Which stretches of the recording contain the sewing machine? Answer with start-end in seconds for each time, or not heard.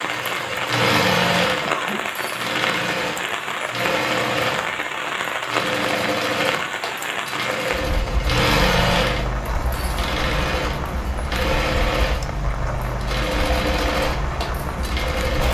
0.0-15.4.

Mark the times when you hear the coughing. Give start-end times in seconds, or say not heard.
1.6-2.0.